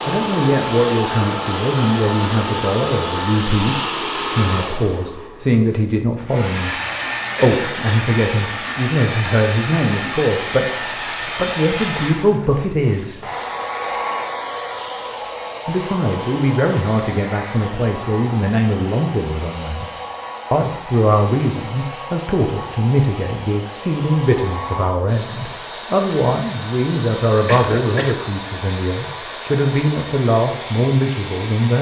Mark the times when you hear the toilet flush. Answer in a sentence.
You can't hear the toilet flush here.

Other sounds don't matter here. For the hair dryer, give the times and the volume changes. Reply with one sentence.
You can hear the hair dryer from 0.0 to 31.7 s, getting quieter.